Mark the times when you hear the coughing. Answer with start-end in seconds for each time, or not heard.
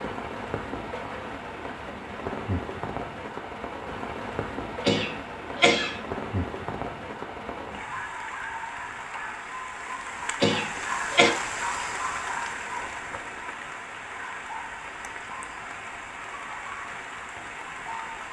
4.8-6.0, 10.4-11.3.